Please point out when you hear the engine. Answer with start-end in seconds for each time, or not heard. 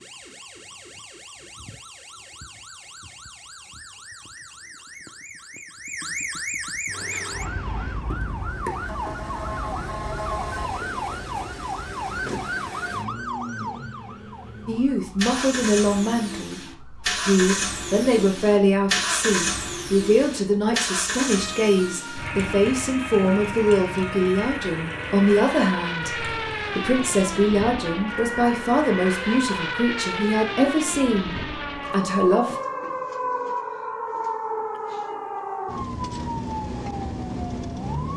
6.8-27.2.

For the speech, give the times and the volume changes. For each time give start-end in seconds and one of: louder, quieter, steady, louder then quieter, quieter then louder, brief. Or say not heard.
14.7-32.5 steady.